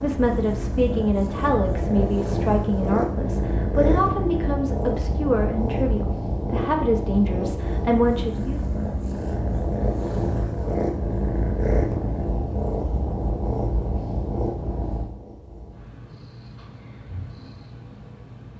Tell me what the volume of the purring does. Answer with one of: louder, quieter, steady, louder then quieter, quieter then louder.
quieter.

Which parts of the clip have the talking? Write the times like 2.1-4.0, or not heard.
0.0-8.6.